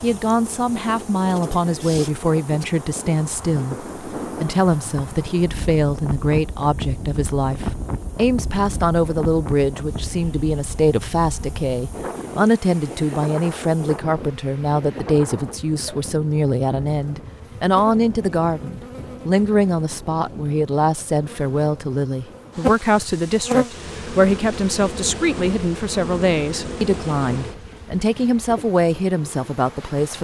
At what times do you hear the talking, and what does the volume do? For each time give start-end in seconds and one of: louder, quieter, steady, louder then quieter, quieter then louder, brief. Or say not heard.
0.0-30.1 steady.